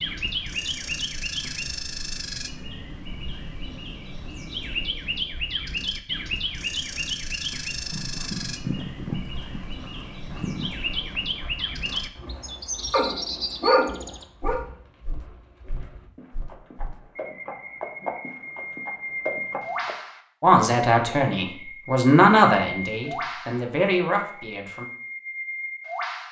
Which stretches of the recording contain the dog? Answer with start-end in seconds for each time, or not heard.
12.9-14.6.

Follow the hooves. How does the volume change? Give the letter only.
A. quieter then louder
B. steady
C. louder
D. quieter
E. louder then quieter
A.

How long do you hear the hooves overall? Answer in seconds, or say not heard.
12 s.